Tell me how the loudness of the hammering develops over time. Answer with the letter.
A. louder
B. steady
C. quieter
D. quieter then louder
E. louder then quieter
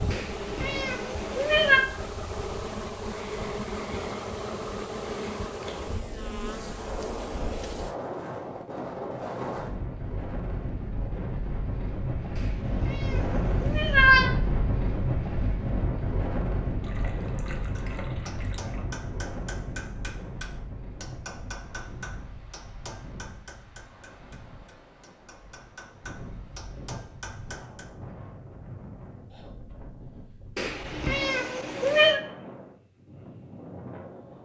D.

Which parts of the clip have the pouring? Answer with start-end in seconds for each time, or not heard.
16.8-18.9.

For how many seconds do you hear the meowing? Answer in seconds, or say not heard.
5 s.